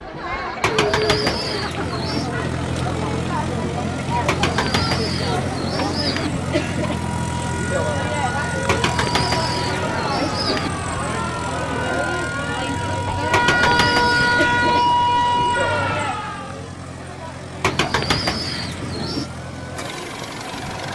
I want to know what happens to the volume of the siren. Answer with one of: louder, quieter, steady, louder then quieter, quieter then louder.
louder.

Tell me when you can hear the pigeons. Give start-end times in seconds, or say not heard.
0.6-2.3, 4.2-6.3, 8.7-10.7, 13.3-14.9, 17.6-19.3.